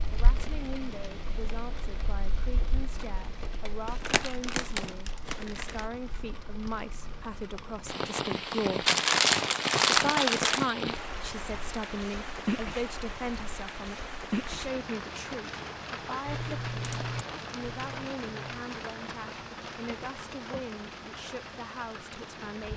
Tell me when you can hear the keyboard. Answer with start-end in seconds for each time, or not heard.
16.2-18.1.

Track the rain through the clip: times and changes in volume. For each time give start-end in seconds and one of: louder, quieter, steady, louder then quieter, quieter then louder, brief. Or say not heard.
0.0-22.7 louder then quieter.